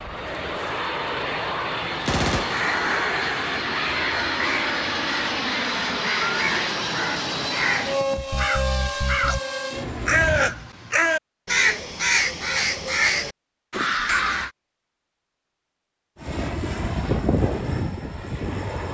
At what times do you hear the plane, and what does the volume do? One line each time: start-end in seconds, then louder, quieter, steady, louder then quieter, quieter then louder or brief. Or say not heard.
0.0-10.6 steady
16.1-18.8 brief.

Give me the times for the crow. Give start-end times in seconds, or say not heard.
2.5-14.5.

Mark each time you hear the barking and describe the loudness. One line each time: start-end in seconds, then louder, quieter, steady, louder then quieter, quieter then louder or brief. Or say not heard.
not heard.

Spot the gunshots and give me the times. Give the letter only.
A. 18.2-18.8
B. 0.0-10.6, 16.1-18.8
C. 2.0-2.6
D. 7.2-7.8
C.